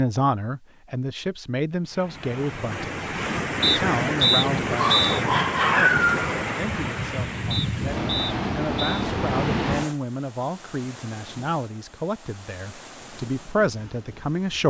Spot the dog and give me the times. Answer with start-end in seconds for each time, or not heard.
4.8-6.3.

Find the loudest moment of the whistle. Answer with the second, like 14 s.
4 s.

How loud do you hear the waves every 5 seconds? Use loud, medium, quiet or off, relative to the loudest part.
loud, loud, quiet.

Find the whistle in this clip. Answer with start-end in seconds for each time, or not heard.
3.6-5.2, 7.5-9.1.